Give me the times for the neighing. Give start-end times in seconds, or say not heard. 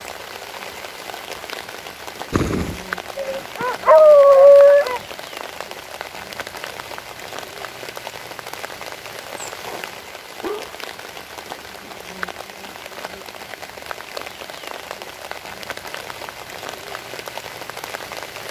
2.3-2.9.